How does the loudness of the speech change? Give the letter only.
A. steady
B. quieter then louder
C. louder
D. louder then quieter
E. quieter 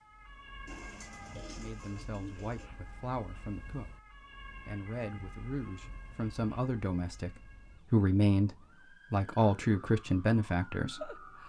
C.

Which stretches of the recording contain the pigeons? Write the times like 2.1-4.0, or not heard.
0.7-2.7.